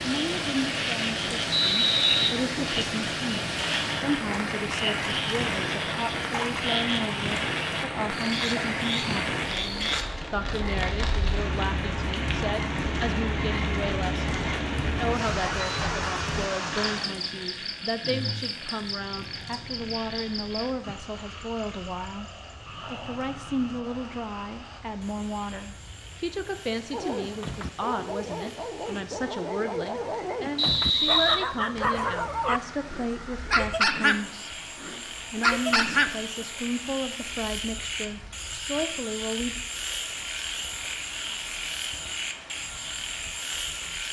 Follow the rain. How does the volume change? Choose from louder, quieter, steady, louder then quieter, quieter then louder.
quieter.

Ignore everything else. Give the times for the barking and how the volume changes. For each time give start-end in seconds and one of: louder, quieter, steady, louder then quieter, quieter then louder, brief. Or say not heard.
26.9-36.5 louder.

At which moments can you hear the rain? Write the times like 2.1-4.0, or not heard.
0.0-44.0.